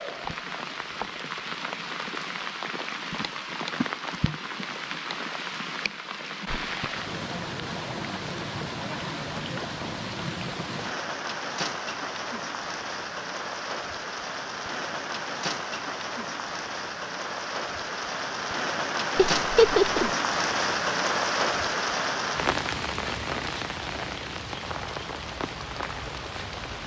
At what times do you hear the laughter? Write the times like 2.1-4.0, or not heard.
19.1-20.1.